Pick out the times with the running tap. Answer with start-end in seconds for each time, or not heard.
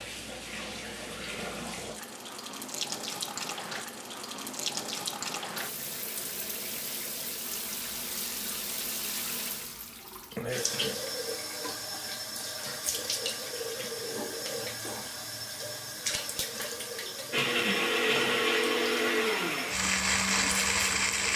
0.0-21.3.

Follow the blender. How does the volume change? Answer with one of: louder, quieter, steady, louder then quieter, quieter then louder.
steady.